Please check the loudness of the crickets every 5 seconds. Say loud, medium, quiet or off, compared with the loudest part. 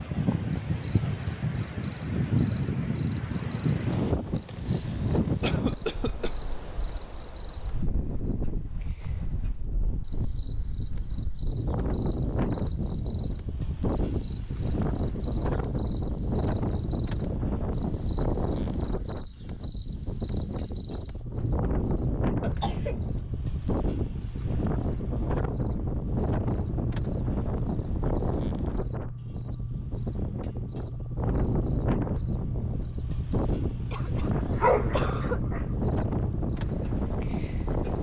medium, medium, medium, medium, loud, loud, loud, loud.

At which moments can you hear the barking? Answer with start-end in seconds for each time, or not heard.
34.3-35.6.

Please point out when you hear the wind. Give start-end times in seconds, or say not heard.
0.0-37.9.